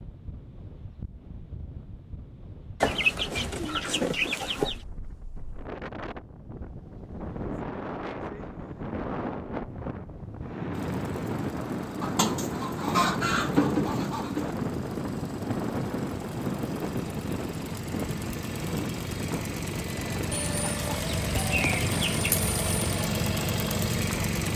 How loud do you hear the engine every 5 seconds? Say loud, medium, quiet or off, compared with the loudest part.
off, off, quiet, medium, loud.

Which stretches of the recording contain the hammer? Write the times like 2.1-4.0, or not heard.
not heard.